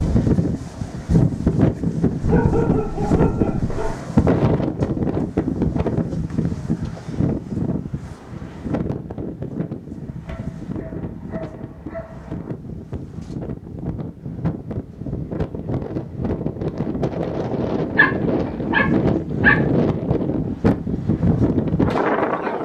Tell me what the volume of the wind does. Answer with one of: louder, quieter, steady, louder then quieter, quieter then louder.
quieter then louder.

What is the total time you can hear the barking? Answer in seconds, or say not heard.
6 s.